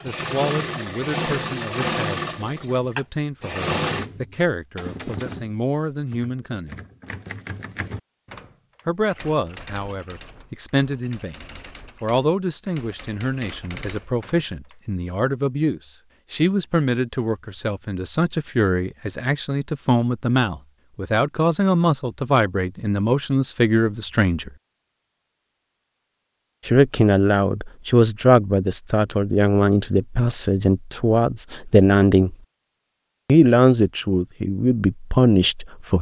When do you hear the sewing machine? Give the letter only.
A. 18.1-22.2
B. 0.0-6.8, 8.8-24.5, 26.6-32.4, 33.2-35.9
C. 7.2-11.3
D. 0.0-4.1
D.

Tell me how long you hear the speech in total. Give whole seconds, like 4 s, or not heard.
31 s.